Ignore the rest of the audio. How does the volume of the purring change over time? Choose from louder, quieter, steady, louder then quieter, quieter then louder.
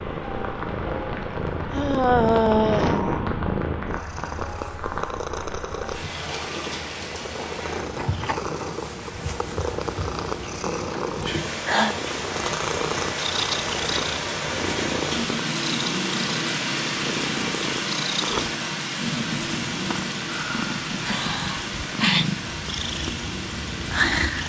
steady.